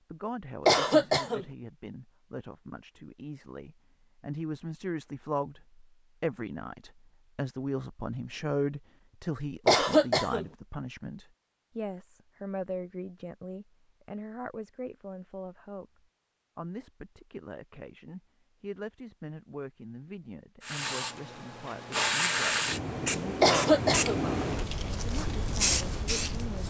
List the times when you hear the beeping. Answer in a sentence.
The beeping can't be heard in this clip.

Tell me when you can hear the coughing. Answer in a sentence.
You can hear the coughing from 0.7 to 1.4 s, from 9.7 to 10.4 s and from 23.4 to 24.2 s.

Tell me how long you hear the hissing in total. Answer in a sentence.
You can hear the hissing for 6 seconds altogether.